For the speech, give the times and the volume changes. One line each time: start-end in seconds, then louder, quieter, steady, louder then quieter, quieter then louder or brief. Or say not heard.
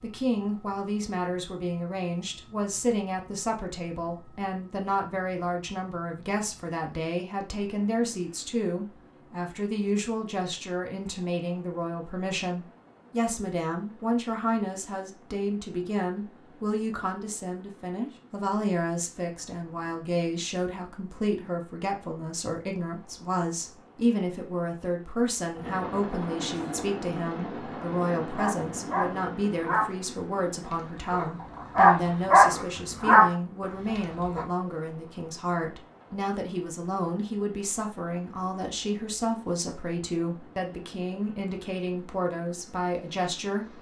0.0-43.7 steady.